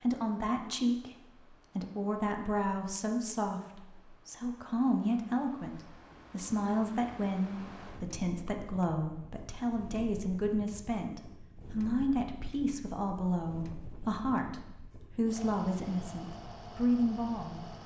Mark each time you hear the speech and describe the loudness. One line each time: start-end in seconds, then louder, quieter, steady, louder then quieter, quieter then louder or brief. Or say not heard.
0.0-1.1 brief
1.8-14.6 steady
15.2-17.6 brief.